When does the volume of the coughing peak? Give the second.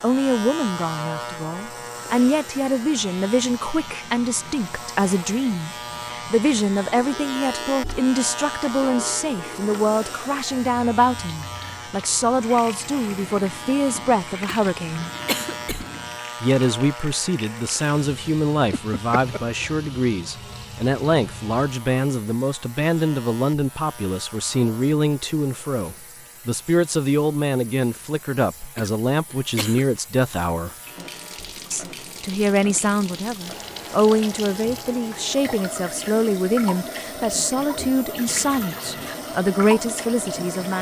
15 s.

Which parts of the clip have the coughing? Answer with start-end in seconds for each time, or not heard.
14.4-15.8, 28.8-29.9.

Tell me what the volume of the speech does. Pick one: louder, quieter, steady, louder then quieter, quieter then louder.
steady.